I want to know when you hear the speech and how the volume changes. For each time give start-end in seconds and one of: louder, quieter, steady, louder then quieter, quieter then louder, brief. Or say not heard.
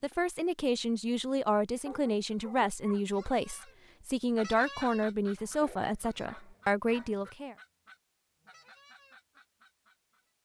0.0-7.5 steady.